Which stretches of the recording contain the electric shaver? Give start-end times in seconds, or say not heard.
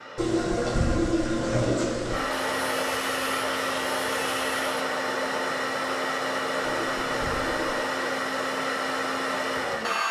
2.4-4.8.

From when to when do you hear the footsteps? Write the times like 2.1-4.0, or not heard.
not heard.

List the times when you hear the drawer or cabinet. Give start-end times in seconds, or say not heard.
not heard.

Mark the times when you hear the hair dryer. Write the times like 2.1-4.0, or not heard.
0.0-10.0.